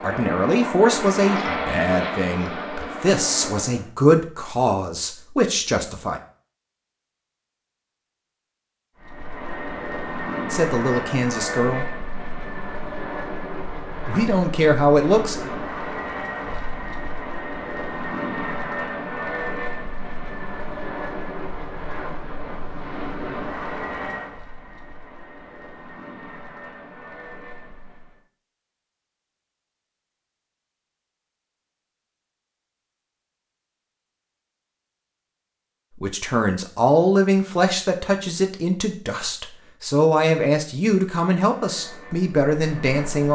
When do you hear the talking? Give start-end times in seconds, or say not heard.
0.0-6.2, 10.5-11.8, 14.1-15.3, 36.0-43.2.